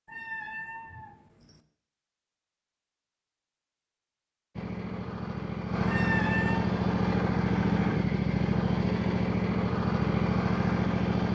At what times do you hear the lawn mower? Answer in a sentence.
The lawn mower can be heard from 4.5 to 11.2 s.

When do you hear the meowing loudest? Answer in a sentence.
The volume of the meowing peaks at 6 seconds.